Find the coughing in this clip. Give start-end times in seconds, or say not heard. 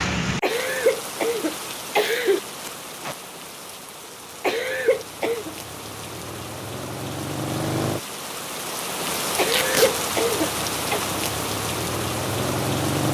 0.4-2.4, 4.4-5.5, 9.3-11.0.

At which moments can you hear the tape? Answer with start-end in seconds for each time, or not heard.
2.6-3.1, 9.4-9.9.